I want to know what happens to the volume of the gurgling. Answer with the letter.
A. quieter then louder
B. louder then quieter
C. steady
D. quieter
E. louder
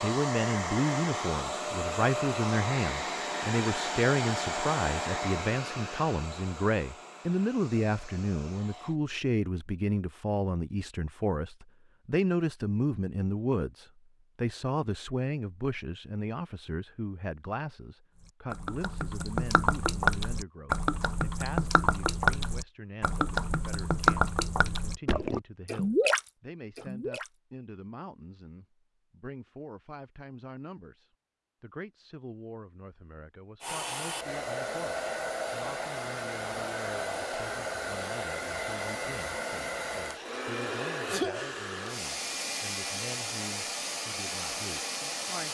C.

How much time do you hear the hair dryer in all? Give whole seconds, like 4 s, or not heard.
21 s.